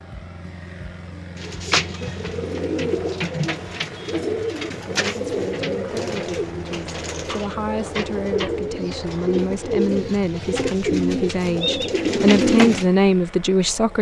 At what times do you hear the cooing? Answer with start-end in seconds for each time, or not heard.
1.4-12.8.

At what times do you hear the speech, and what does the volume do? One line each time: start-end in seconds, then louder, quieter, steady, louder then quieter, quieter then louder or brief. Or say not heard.
4.8-13.9 louder.